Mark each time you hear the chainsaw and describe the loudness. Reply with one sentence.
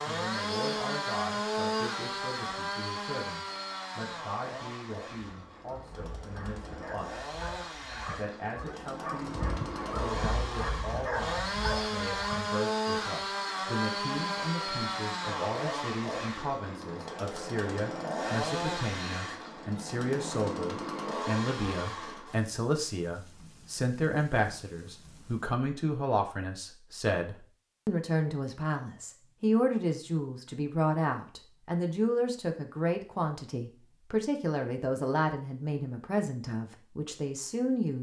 You can hear the chainsaw from 0.0 to 22.4 s, getting quieter then louder.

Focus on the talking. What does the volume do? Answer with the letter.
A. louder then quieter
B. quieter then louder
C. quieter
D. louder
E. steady
D.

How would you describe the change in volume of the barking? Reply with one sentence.
The volume of the barking goes up.